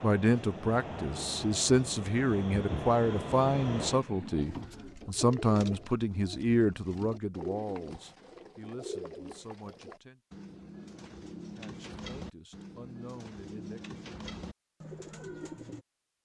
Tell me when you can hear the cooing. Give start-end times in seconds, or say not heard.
4.4-15.8.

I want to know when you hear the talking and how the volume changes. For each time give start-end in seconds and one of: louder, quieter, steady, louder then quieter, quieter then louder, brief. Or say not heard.
0.0-10.2 quieter
11.6-13.8 brief.